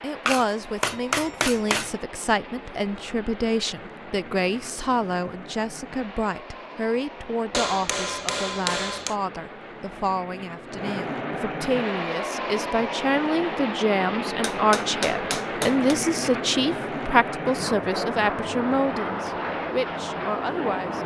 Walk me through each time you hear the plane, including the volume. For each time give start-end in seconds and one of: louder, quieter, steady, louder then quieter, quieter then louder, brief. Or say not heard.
0.0-21.0 louder.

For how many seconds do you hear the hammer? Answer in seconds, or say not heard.
5 s.